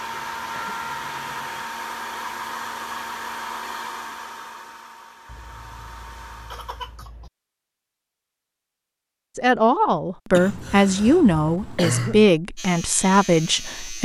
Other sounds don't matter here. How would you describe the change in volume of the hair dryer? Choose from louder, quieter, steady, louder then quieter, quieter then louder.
quieter.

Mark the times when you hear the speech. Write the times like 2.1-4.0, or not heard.
9.3-14.0.